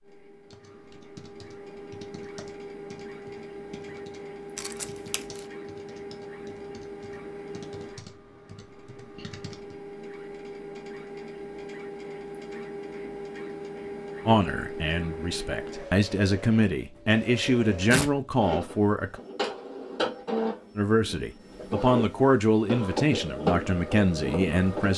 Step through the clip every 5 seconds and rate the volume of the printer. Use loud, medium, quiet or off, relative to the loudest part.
medium, medium, medium, medium, loud.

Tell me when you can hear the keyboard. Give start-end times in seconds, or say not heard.
0.5-9.8.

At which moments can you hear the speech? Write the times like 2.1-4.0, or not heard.
14.2-19.1, 20.8-24.9.